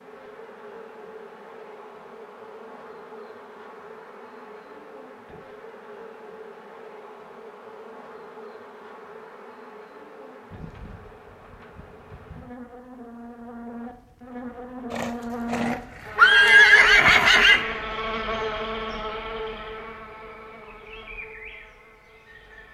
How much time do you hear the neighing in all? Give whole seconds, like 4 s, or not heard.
3 s.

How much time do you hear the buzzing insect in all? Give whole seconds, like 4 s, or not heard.
23 s.